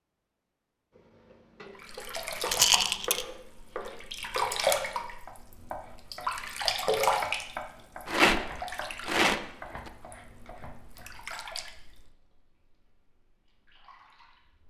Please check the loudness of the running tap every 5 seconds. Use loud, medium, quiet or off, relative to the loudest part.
loud, loud, quiet.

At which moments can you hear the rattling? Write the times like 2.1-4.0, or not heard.
2.5-3.2, 8.1-9.9.